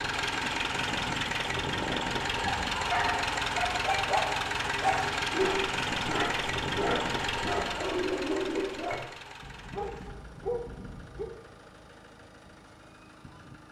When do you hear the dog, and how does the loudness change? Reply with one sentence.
You can hear the dog from 2.4 to 11.3 s, getting quieter.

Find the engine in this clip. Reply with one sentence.
You can hear the engine from 0.0 to 13.6 s.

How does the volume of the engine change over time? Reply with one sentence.
The loudness of the engine goes down.